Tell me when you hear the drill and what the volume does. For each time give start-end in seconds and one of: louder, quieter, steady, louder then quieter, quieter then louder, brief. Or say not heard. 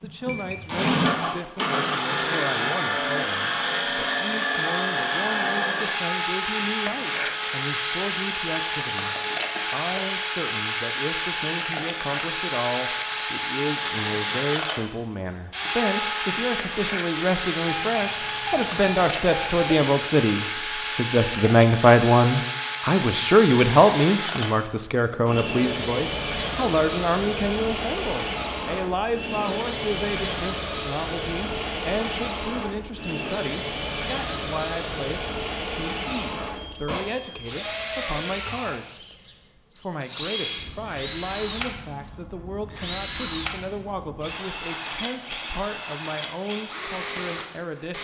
0.0-47.9 quieter.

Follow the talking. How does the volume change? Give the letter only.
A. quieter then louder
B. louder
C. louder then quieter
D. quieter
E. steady
C.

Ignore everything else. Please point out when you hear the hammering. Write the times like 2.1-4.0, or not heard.
not heard.